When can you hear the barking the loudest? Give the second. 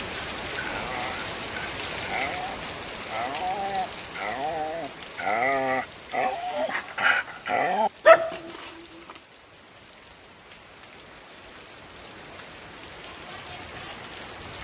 8 s.